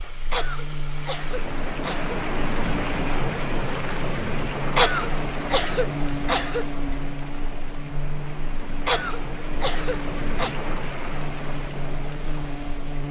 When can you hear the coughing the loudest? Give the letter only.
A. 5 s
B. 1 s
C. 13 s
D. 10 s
A.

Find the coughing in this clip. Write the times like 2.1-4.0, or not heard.
0.3-2.2, 4.8-6.7, 8.8-10.6.